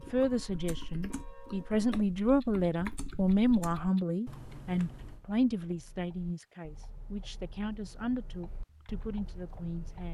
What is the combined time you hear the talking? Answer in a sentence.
You can hear the talking for 10 seconds altogether.